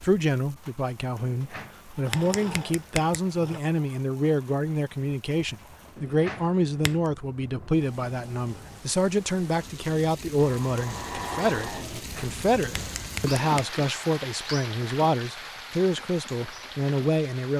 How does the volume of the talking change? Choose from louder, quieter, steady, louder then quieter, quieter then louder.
steady.